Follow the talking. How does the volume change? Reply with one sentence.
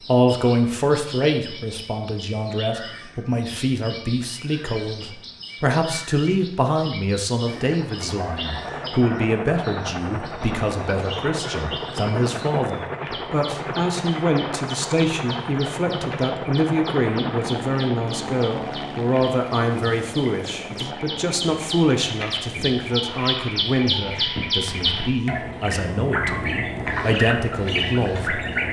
The loudness of the talking stays about the same.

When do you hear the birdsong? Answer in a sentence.
The birdsong can be heard from 0.0 to 28.6 s.